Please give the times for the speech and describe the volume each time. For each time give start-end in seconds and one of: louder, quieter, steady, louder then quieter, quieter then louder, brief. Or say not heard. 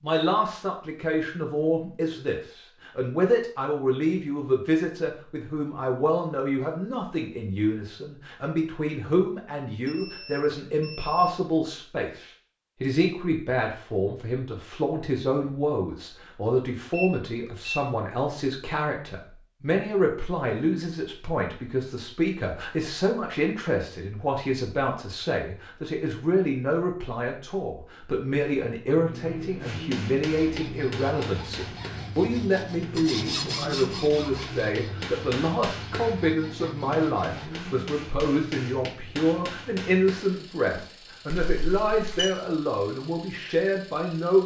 0.0-44.4 steady.